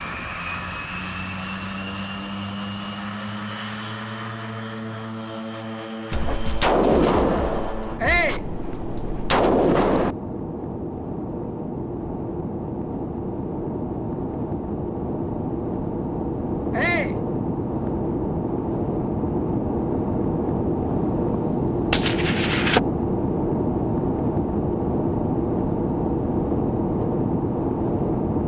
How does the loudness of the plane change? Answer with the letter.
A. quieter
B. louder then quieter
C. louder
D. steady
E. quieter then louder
C.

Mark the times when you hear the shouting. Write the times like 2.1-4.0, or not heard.
8.0-8.4, 16.7-17.2.